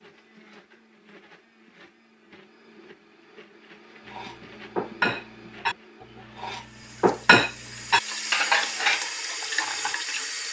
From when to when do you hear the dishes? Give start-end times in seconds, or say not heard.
4.1-9.9.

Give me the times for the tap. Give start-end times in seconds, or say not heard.
6.6-10.4.